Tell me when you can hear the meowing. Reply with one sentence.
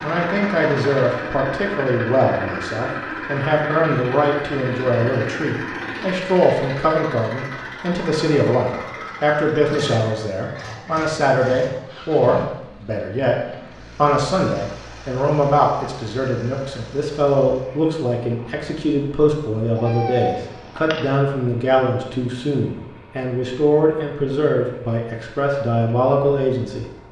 The meowing can be heard from 19.8 to 21.1 s.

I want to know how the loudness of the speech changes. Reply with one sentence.
The loudness of the speech stays about the same.